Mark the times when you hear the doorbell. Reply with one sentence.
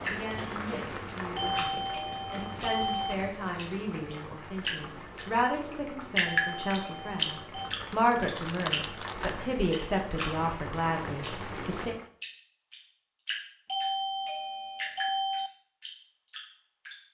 The doorbell can be heard from 1.4 to 3.1 s, from 6.2 to 7.7 s and from 13.7 to 15.5 s.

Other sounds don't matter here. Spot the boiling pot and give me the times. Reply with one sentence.
The boiling pot can be heard from 0.0 to 12.1 s.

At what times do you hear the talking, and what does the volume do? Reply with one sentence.
You can hear the talking from 0.1 to 11.9 s, getting louder.